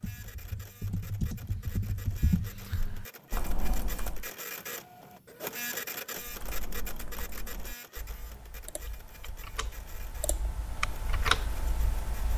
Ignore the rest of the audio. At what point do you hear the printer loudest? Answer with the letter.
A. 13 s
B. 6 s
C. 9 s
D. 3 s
B.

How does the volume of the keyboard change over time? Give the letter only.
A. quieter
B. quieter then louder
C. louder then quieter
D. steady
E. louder
B.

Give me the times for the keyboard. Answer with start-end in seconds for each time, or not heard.
0.0-4.3, 6.2-12.3.